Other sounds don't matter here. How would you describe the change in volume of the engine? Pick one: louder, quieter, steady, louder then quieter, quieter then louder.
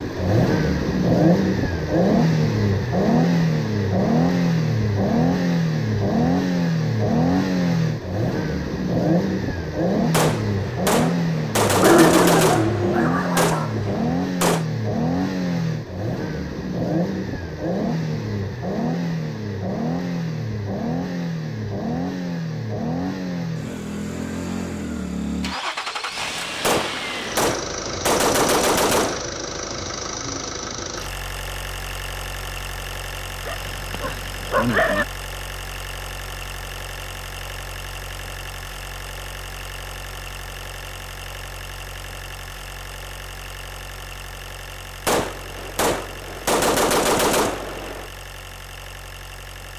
quieter.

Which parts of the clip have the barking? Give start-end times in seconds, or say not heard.
11.8-13.8, 33.5-35.0.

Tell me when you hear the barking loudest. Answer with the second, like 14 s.
12 s.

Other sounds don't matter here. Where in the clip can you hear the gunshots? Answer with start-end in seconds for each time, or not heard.
10.1-14.7, 26.6-29.2, 45.0-48.1.